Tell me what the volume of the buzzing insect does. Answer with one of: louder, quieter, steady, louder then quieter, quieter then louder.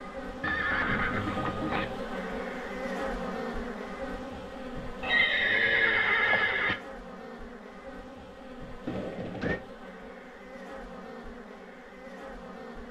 quieter.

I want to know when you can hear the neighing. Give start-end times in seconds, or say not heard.
0.4-1.9, 5.0-6.8, 8.8-9.6.